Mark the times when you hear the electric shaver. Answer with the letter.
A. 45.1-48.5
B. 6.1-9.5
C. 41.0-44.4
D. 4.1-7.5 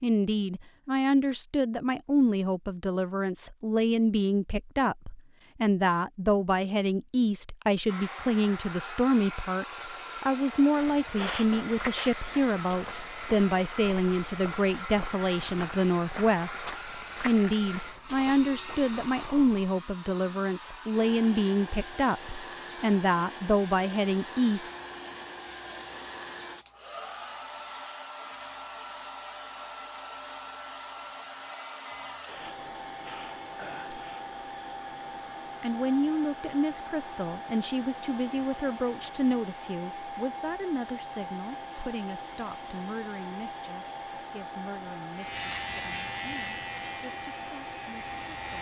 A.